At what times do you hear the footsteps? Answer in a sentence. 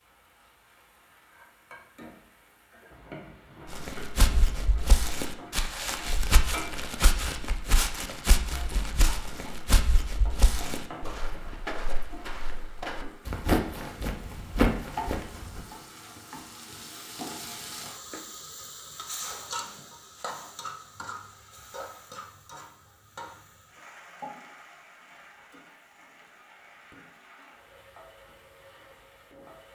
You can hear the footsteps from 3.6 to 15.6 s.